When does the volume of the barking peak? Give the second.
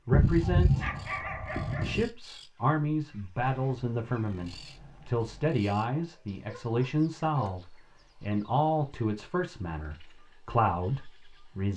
1 s.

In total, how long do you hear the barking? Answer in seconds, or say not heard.
4 s.